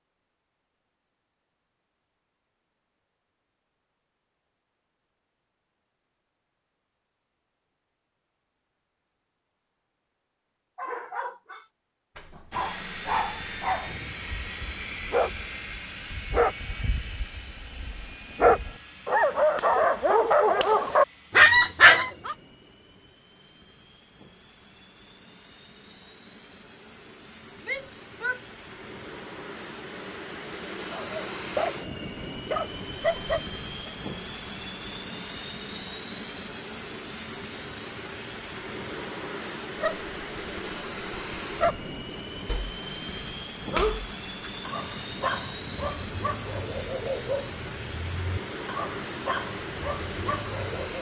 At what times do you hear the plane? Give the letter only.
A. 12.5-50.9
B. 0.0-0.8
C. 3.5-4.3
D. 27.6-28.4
A.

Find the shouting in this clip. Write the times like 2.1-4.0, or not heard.
27.6-28.4.